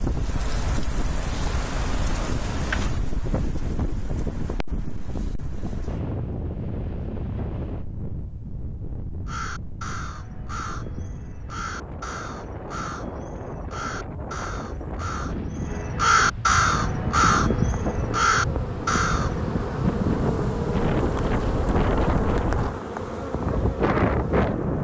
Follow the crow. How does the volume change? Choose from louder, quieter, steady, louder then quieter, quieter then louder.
louder.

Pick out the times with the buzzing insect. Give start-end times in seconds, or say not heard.
16.7-24.8.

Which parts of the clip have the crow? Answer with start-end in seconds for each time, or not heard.
9.2-19.5.